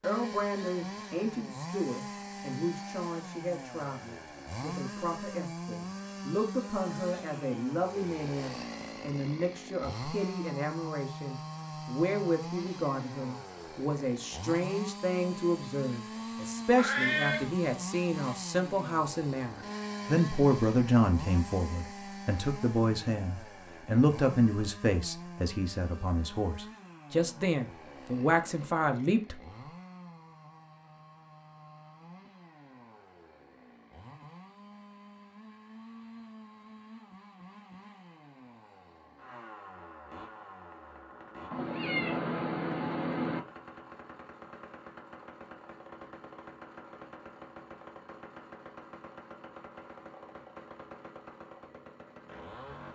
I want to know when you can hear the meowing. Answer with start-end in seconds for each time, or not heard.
16.8-17.5, 41.5-43.4.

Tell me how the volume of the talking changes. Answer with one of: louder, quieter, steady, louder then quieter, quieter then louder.
louder.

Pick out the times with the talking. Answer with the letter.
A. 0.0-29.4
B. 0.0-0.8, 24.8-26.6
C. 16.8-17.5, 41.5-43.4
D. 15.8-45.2
A.